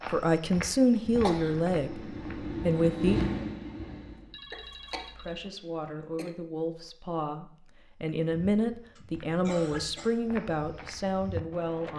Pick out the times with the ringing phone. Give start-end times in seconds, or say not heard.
4.1-5.5.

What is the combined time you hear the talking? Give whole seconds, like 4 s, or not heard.
10 s.